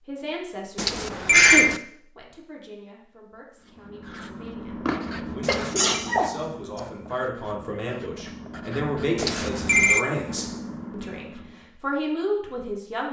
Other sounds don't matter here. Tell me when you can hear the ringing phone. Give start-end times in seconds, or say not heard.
0.8-1.8, 5.4-5.8, 9.2-10.1.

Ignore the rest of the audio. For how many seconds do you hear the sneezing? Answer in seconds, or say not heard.
4 s.